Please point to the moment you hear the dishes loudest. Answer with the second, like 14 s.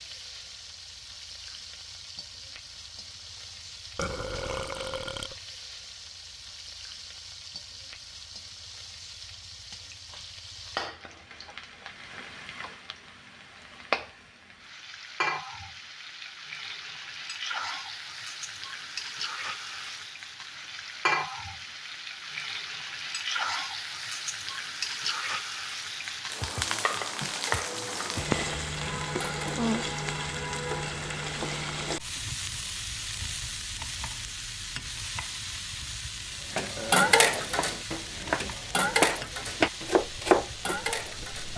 37 s.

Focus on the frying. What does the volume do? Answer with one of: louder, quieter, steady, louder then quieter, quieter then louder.
louder then quieter.